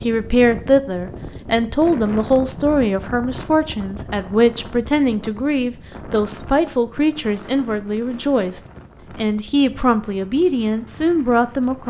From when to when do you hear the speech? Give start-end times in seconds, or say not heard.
0.0-11.8.